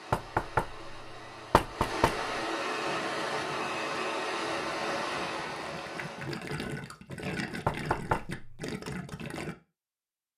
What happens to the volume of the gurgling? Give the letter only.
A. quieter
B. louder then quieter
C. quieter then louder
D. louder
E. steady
D.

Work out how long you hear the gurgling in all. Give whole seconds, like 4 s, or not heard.
7 s.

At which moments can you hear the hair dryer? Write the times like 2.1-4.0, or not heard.
0.0-6.4.